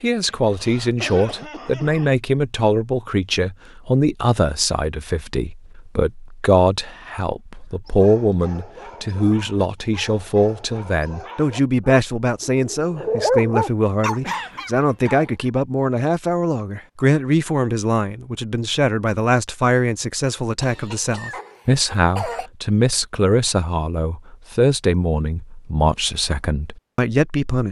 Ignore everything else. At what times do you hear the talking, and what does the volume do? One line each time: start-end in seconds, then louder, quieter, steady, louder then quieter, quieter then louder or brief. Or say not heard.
0.0-27.6 steady.